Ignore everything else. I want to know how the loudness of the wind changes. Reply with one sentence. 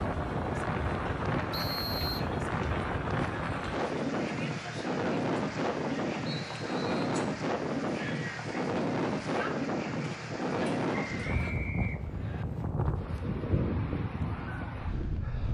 The loudness of the wind stays about the same.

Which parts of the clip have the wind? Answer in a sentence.
You can hear the wind from 0.0 to 15.4 s.